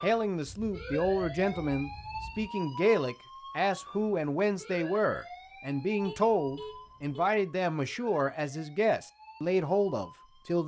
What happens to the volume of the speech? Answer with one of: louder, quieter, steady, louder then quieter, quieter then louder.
steady.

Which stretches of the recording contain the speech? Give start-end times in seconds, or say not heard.
0.0-10.6.